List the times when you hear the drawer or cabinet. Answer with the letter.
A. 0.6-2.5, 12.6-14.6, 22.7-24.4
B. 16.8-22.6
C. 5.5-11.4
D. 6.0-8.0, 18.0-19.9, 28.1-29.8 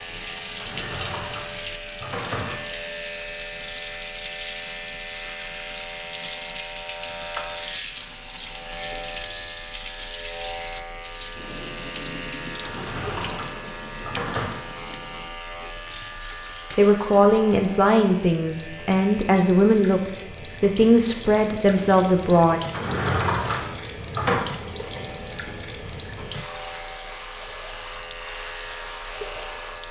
A.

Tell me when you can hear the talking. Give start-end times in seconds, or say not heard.
16.8-22.6.